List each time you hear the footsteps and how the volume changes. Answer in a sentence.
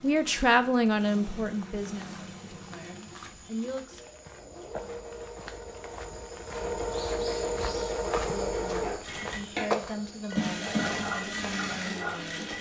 The footsteps can be heard from 1.6 to 11.6 s, getting louder.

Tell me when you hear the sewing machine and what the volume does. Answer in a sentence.
The sewing machine can be heard from 0.0 to 12.5 s, getting louder.